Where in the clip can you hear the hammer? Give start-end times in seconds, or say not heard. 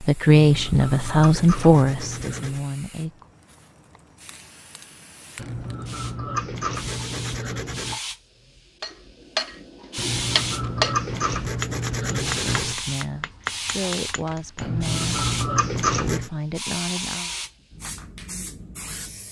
8.8-14.7.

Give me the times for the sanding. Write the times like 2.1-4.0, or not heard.
0.3-2.6, 5.3-8.0, 9.9-12.8, 14.6-16.3.